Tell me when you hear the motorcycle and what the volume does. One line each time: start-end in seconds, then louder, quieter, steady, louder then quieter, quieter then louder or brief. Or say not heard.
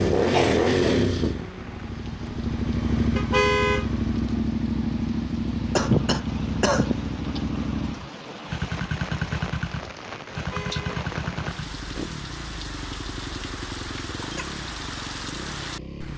0.0-16.1 quieter.